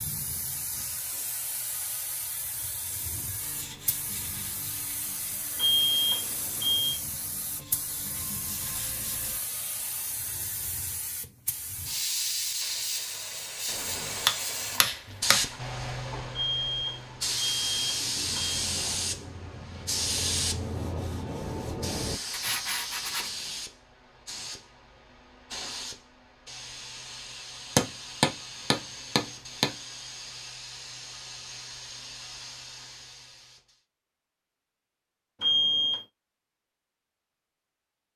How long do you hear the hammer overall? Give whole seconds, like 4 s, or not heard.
4 s.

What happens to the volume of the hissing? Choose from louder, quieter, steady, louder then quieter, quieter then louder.
louder then quieter.